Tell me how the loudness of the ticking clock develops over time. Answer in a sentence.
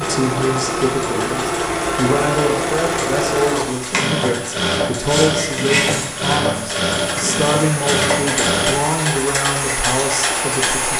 The volume of the ticking clock goes up.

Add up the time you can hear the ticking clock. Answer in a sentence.
The ticking clock can be heard for 11 seconds in total.